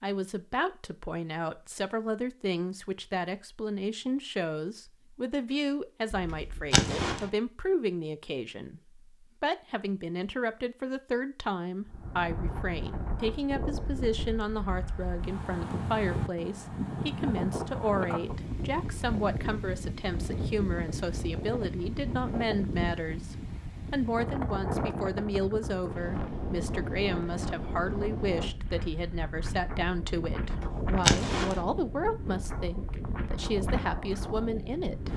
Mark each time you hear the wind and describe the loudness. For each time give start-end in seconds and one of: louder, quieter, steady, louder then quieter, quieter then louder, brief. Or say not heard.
11.8-35.1 steady.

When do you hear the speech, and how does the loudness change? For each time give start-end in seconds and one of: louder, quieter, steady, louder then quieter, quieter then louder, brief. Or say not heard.
0.0-35.1 steady.